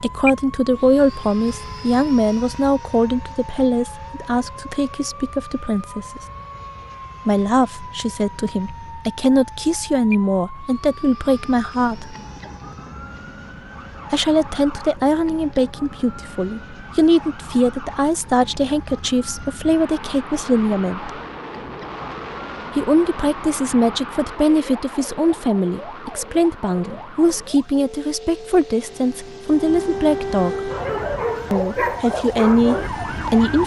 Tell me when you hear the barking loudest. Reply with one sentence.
The volume of the barking peaks at 32 seconds.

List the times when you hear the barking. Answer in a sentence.
You can hear the barking from 30.4 to 33.5 s.